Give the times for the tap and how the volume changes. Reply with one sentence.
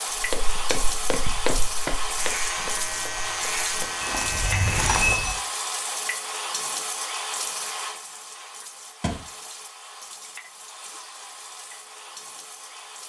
You can hear the tap from 0.0 to 13.0 s, getting quieter.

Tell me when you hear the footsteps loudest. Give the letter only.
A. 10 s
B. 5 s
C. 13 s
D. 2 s
B.